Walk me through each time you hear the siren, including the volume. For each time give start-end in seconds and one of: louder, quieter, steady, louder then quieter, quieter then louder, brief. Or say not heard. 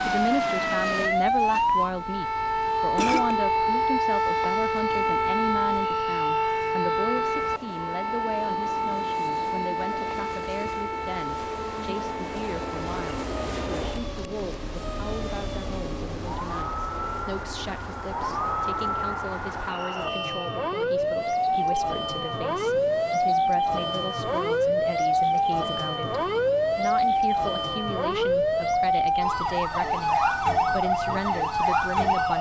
0.0-32.3 quieter then louder.